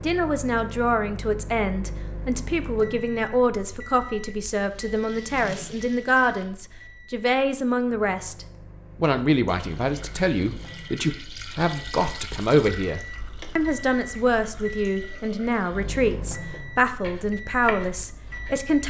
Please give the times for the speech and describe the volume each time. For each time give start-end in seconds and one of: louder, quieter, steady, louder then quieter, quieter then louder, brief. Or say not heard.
0.0-18.8 steady.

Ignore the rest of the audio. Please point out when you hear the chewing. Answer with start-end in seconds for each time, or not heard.
not heard.